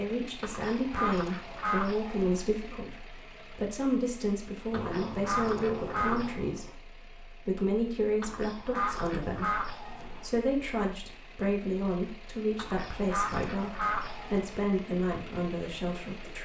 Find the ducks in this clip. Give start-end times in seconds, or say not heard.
0.4-2.5, 4.7-6.4, 8.2-10.3, 12.6-14.6.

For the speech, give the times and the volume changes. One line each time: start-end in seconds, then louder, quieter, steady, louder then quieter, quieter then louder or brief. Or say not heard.
0.0-16.3 steady.